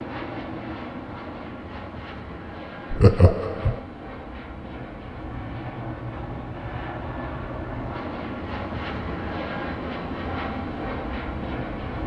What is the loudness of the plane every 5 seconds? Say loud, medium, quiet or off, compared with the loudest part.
medium, loud, loud.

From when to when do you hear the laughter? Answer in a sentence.
You can hear the laughter from 2.9 to 3.8 s.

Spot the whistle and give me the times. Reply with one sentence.
The whistle can't be heard in this clip.